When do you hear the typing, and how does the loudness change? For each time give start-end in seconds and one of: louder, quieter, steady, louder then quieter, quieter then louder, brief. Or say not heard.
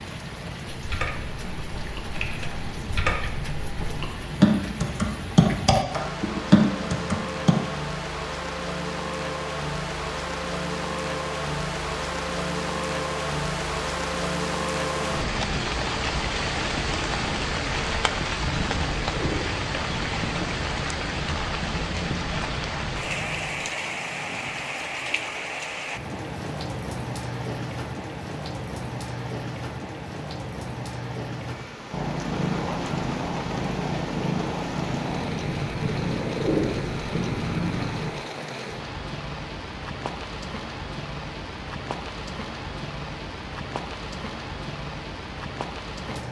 0.7-7.5 louder.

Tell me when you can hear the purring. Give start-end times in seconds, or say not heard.
14.9-23.6, 31.9-38.1.